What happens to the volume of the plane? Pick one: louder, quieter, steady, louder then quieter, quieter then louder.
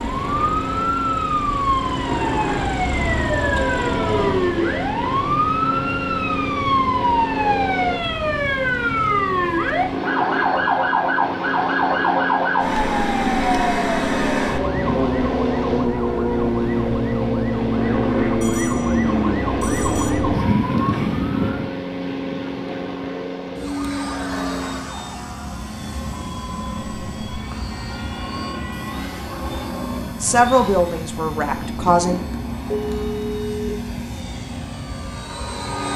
steady.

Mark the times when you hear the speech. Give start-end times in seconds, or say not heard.
30.2-32.2.